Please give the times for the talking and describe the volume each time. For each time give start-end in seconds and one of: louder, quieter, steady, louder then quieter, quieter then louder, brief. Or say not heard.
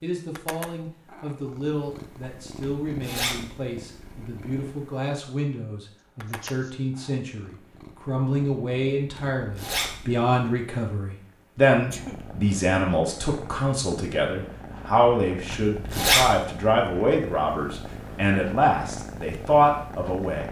0.0-20.4 louder.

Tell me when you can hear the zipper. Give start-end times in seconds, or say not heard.
2.6-3.5, 9.2-9.9, 15.5-16.3.